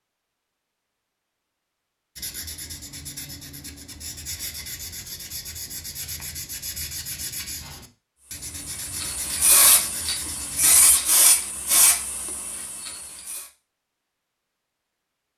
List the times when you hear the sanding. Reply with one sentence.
The sanding can be heard from 2.1 to 10.8 s.